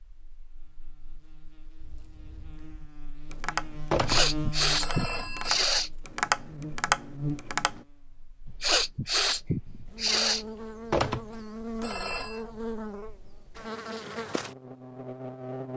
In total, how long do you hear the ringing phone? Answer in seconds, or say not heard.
3 s.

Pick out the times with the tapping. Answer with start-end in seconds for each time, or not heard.
1.8-7.8.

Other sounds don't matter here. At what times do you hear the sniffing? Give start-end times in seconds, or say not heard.
4.0-5.9, 8.4-10.4.